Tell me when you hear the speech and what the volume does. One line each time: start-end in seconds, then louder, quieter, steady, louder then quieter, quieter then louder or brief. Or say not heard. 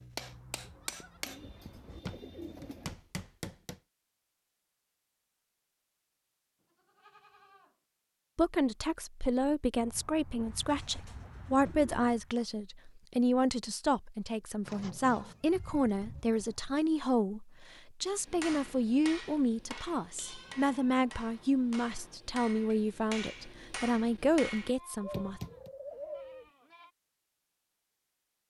8.3-25.4 steady.